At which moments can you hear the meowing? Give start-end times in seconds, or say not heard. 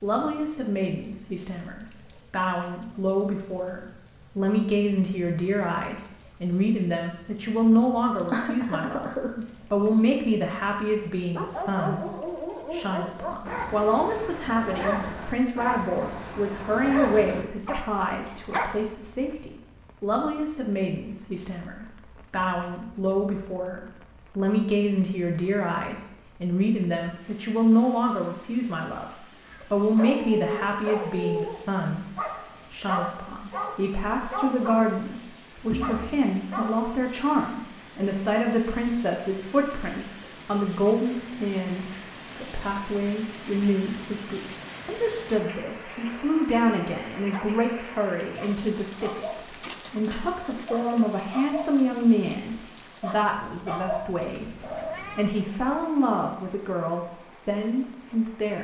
54.3-55.3.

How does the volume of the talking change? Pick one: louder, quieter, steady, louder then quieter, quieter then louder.
steady.